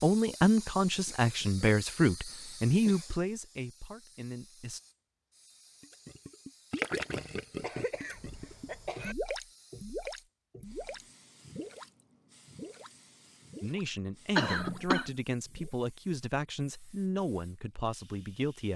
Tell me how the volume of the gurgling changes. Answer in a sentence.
The loudness of the gurgling goes down.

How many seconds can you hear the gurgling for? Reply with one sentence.
You can hear the gurgling for 10 seconds altogether.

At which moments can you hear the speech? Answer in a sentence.
You can hear the speech from 0.0 to 4.8 s and from 13.6 to 18.7 s.